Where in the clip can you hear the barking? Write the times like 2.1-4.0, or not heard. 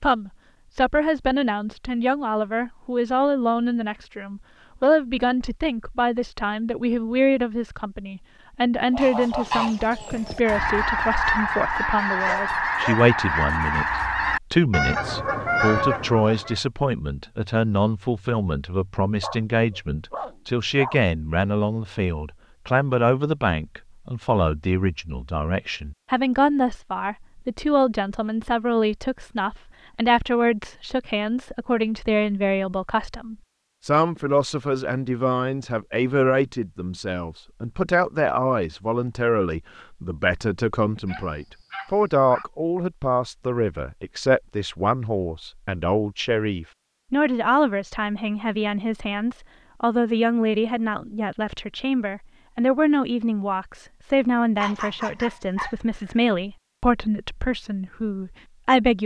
12.1-13.1, 19.2-21.0, 41.0-42.5, 54.5-56.2.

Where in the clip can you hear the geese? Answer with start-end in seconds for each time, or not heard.
8.8-16.6.